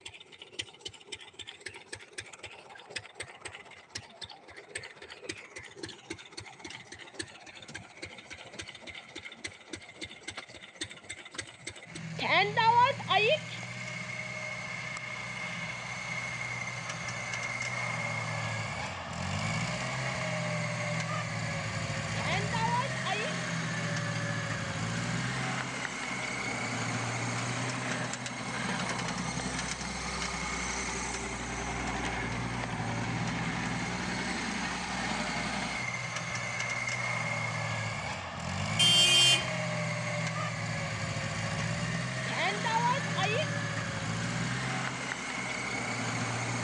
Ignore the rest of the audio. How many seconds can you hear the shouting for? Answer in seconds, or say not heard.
4 s.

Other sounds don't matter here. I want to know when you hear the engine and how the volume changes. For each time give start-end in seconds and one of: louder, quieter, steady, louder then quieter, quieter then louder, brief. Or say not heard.
0.0-46.5 louder.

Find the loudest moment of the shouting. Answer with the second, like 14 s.
13 s.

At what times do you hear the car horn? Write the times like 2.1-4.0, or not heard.
38.8-39.5.